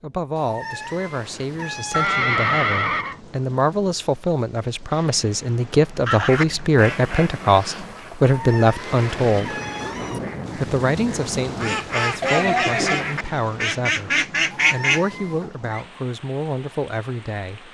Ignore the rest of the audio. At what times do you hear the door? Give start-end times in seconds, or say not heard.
not heard.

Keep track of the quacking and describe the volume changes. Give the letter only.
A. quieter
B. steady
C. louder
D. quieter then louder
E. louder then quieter
D.